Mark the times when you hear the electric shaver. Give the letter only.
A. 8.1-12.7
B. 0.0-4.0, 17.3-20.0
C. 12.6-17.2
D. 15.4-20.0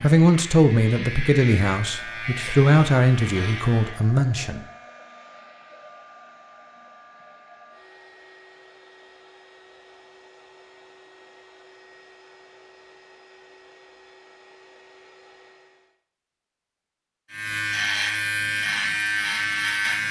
B.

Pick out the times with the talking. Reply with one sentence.
The talking can be heard from 0.0 to 4.6 s.